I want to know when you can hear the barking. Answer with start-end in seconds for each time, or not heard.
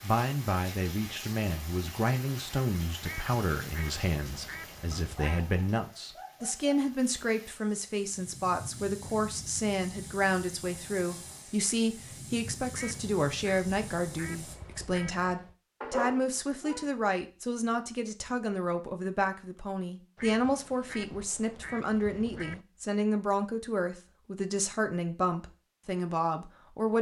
4.9-6.8, 15.8-16.9.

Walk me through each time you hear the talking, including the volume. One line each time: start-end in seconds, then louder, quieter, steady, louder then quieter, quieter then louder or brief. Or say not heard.
0.0-26.9 steady.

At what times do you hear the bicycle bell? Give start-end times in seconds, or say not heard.
not heard.